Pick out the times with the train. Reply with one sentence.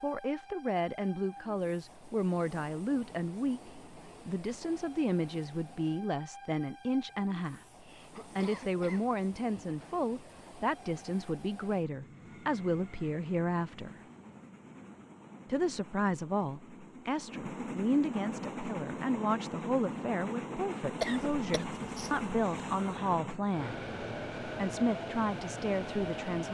You can hear the train from 0.0 to 26.4 s.